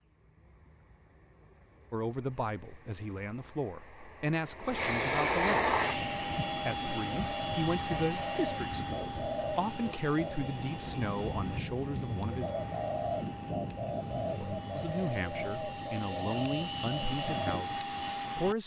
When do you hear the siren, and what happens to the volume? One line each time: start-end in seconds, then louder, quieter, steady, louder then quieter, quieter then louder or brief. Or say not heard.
not heard.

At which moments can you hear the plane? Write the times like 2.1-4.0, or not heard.
0.0-18.6.